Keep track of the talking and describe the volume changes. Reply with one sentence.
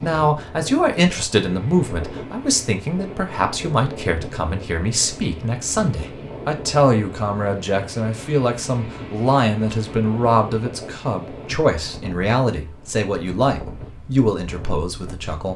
The volume of the talking stays about the same.